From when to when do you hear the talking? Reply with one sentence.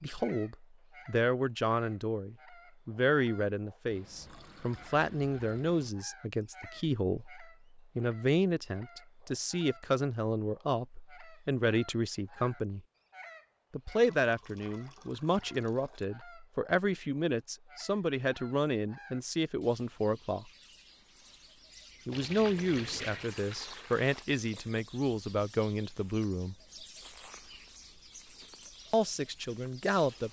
You can hear the talking from 0.0 to 12.8 s, from 13.7 to 20.4 s, from 22.1 to 26.6 s and from 28.9 to 30.2 s.